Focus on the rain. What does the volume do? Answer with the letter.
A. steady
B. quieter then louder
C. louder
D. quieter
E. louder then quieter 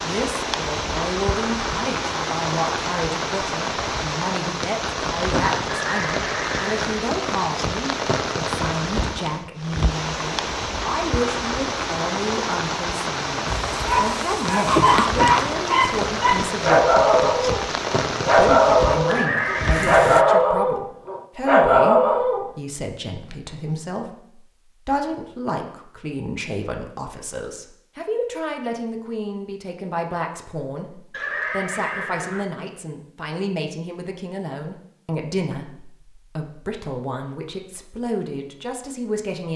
A.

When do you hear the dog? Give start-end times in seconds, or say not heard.
13.4-22.5.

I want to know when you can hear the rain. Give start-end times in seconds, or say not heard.
0.0-20.2.